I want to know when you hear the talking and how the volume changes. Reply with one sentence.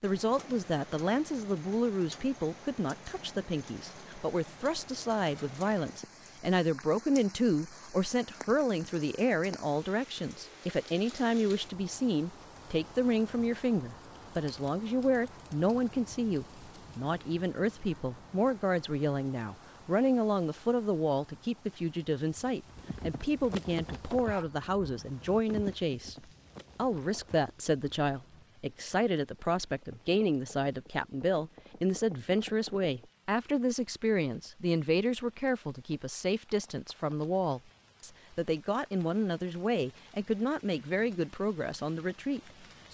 You can hear the talking from 0.0 to 26.1 s, at a steady volume; and from 26.8 to 42.8 s, at a steady volume.